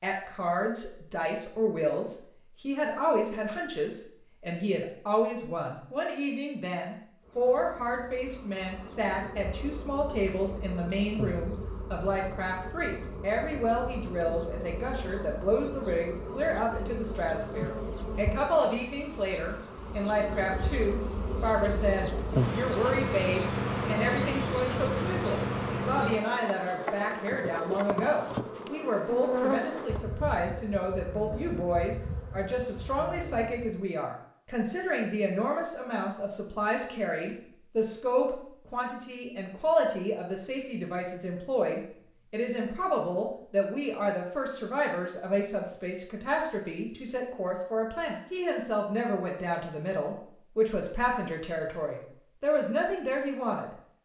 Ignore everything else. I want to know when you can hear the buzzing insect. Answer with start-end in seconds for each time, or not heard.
7.2-33.7.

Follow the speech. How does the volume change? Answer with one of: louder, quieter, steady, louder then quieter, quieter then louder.
steady.